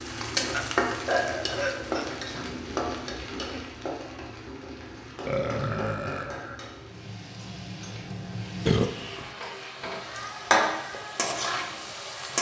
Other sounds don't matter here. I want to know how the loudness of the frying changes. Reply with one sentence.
The volume of the frying goes down, then up.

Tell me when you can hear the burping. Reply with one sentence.
You can hear the burping from 0.5 to 2.2 s, from 5.2 to 6.5 s and from 8.7 to 9.2 s.